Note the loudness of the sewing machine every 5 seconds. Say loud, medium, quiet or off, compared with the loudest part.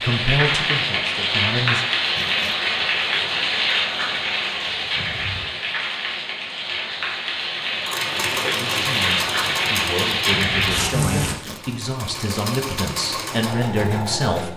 off, loud, loud.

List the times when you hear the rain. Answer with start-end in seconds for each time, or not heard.
0.0-11.3.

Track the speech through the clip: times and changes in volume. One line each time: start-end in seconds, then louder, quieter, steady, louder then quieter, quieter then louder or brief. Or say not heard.
0.0-1.9 brief
8.5-14.5 louder.